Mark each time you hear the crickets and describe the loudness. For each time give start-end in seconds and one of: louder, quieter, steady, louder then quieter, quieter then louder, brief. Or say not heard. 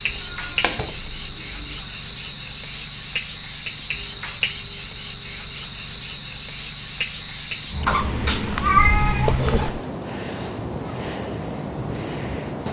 0.0-12.6 steady.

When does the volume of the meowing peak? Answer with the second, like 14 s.
9 s.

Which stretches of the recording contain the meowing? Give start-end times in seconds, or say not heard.
0.1-1.8, 7.8-9.8.